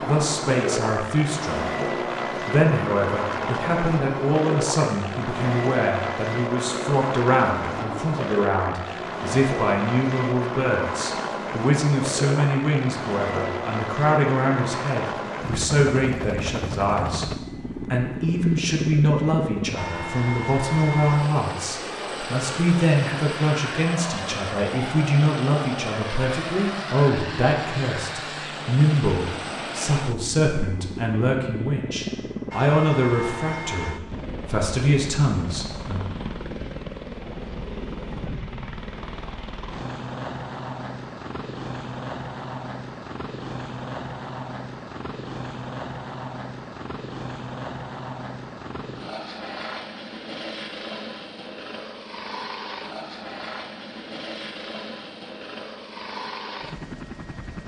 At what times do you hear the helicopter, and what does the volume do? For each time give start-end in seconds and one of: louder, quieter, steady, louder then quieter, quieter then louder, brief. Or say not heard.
0.0-57.6 quieter.